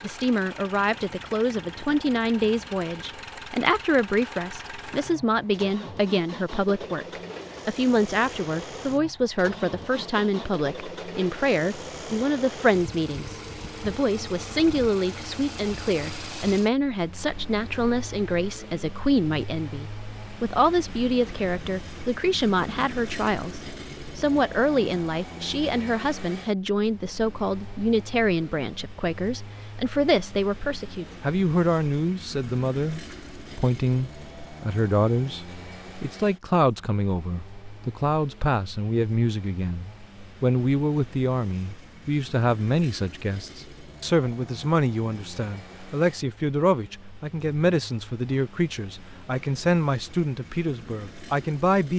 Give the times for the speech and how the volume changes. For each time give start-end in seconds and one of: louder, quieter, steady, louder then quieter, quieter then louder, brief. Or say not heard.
0.0-51.9 steady.